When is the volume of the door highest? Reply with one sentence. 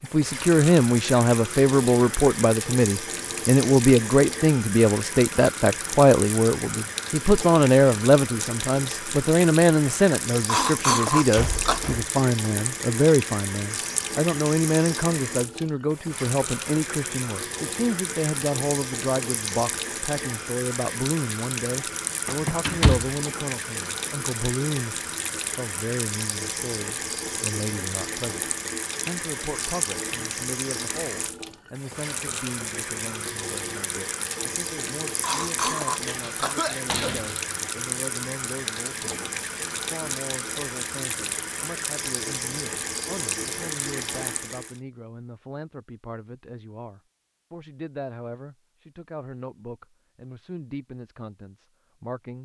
The loudest moment of the door is at 23 seconds.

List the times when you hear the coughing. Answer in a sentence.
You can hear the coughing from 10.4 to 11.9 s and from 35.2 to 37.1 s.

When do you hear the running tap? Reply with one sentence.
The running tap can be heard from 0.0 to 44.8 s.